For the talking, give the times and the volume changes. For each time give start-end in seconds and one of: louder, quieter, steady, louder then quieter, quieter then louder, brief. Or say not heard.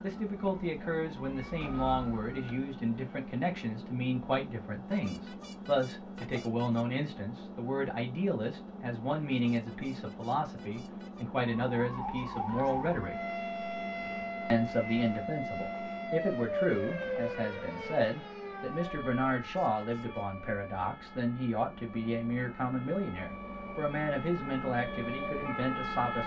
0.0-13.2 steady
14.5-26.2 steady.